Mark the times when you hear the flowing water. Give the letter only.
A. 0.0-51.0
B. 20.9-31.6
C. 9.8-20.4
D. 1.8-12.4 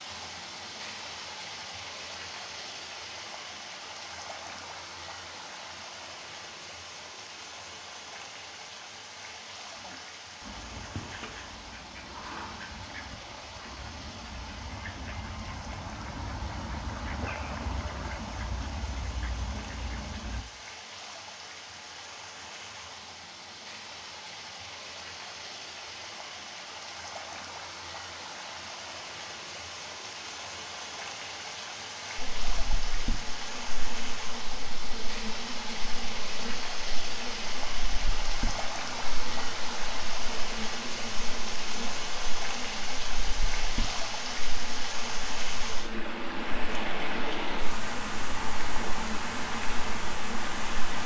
A.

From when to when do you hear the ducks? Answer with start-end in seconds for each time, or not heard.
9.8-20.4.